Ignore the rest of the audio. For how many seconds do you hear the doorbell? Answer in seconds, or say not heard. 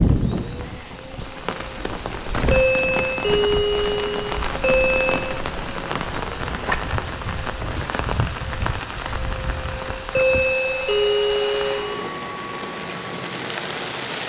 5 s.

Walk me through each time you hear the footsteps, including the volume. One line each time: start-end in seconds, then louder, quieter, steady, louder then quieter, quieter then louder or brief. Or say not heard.
not heard.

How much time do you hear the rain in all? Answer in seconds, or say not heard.
14 s.